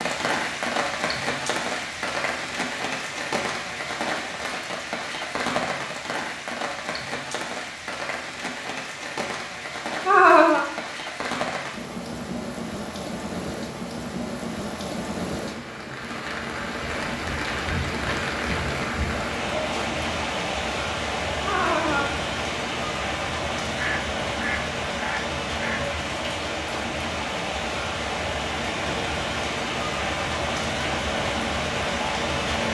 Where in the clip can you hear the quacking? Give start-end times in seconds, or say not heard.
23.8-25.9.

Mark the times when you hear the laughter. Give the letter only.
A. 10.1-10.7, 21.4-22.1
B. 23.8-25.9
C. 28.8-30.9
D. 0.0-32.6
A.